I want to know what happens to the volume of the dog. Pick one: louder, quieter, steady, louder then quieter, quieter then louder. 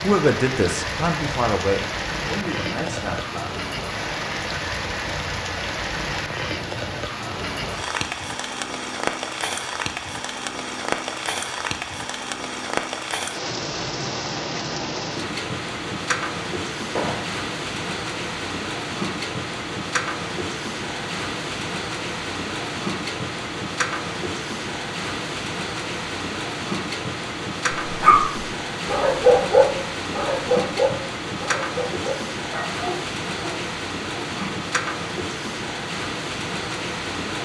louder then quieter.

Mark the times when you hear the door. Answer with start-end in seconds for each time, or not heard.
16.9-17.4.